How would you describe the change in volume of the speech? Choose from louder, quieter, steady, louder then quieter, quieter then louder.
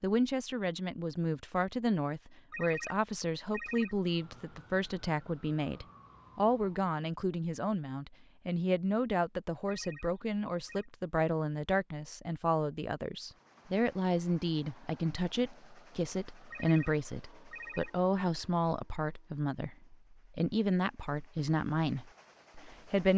steady.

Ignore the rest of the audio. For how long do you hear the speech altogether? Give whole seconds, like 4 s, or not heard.
23 s.